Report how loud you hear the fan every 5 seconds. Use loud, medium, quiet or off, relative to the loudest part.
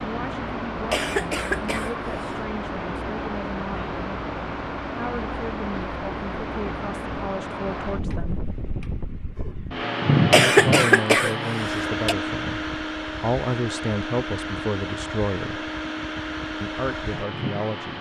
medium, medium, loud, medium.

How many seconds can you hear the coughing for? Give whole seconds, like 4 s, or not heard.
3 s.